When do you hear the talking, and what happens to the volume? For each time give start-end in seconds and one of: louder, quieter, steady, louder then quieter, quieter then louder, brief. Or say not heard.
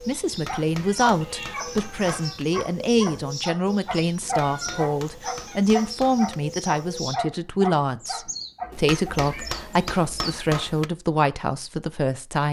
0.1-12.4 steady.